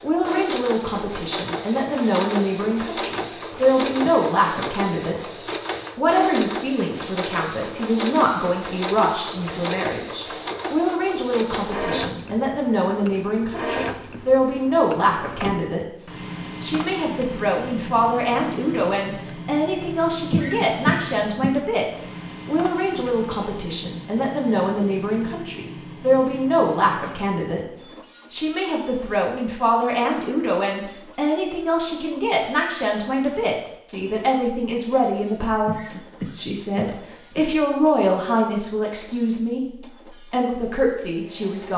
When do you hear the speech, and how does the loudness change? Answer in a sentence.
You can hear the speech from 0.0 to 39.6 s, at a steady volume; and briefly from 40.3 to 41.7 s.